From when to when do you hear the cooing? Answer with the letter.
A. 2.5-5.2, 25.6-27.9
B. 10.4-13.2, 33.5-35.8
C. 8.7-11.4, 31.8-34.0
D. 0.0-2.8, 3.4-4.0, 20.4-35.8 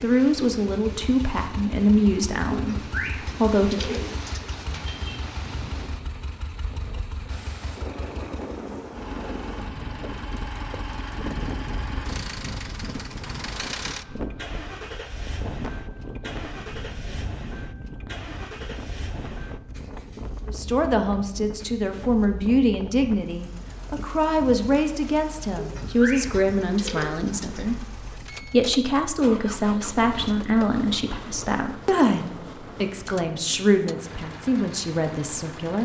A.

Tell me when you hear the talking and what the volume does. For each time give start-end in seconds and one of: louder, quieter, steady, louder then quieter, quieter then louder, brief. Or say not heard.
0.0-2.8 brief
3.4-4.0 brief
20.4-35.8 steady.